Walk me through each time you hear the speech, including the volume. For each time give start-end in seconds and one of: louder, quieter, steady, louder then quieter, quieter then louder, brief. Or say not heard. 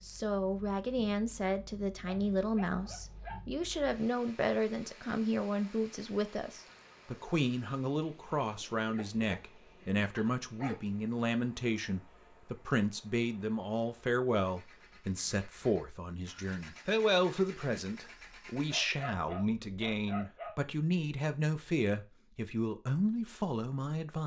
0.0-24.2 steady.